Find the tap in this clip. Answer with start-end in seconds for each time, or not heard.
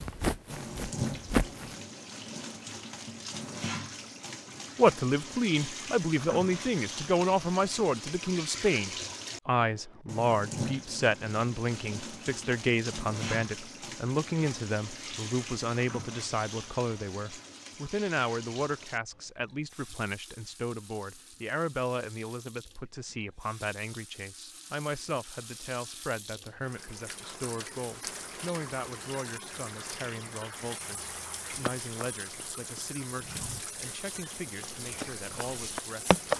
0.0-36.3.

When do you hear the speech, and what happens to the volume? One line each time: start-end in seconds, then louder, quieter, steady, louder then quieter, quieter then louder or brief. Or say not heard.
4.8-36.3 quieter.